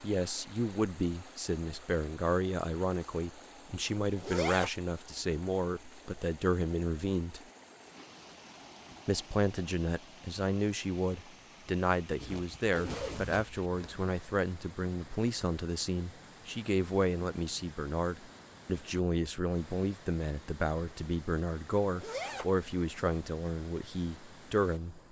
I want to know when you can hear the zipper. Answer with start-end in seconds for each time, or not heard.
4.2-4.7, 12.2-13.9, 21.9-22.5.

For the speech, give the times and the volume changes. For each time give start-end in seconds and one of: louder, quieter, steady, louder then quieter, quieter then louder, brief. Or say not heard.
0.0-7.4 steady
9.1-25.0 steady.